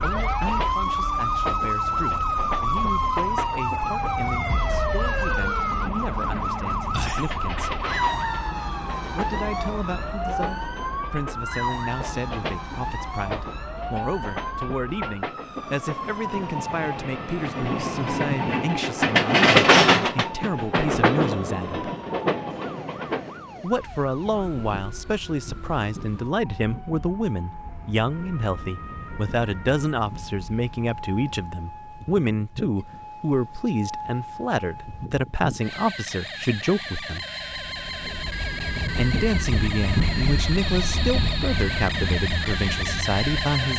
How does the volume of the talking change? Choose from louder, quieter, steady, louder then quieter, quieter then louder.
louder.